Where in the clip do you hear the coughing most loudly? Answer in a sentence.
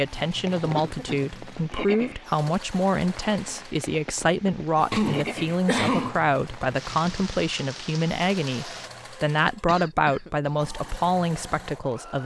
The volume of the coughing peaks at 6 seconds.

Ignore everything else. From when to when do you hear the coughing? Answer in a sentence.
You can hear the coughing from 0.5 to 1.2 s, from 4.9 to 6.2 s and from 9.4 to 10.8 s.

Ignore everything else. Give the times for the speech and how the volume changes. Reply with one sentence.
The speech can be heard from 0.0 to 12.2 s, at a steady volume.